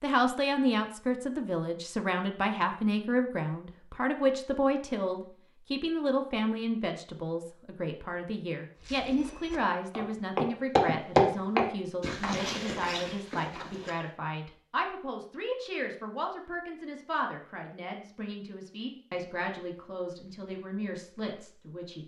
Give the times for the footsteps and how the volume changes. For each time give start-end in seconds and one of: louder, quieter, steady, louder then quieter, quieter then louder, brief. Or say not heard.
8.8-14.1 louder then quieter.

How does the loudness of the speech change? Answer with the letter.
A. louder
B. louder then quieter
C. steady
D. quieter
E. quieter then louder
D.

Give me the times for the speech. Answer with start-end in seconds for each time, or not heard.
0.0-22.0.